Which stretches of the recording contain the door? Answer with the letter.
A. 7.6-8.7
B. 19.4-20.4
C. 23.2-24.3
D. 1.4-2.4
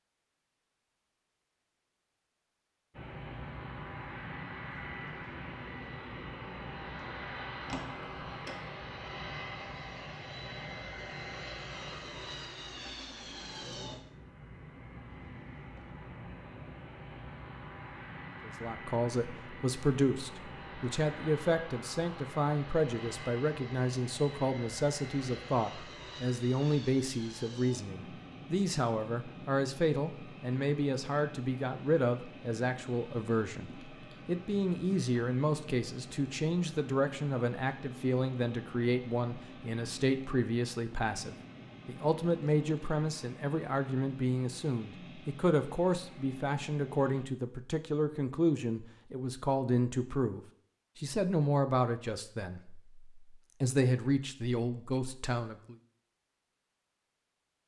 A.